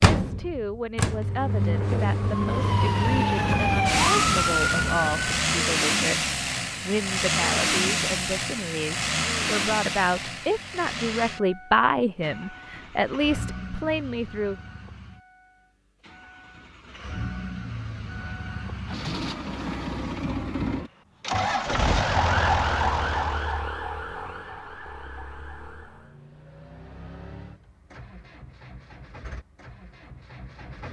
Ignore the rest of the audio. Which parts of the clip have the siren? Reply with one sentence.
You can hear the siren from 2.1 to 5.5 s and from 22.0 to 26.1 s.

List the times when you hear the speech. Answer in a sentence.
You can hear the speech from 0.0 to 14.6 s.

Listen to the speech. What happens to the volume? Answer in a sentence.
The volume of the speech goes up.